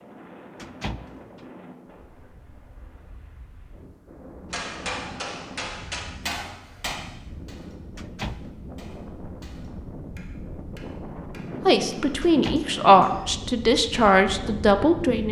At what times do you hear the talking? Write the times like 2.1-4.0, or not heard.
11.7-15.2.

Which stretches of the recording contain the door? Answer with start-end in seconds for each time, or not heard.
0.6-1.4, 8.0-8.5, 12.2-12.8.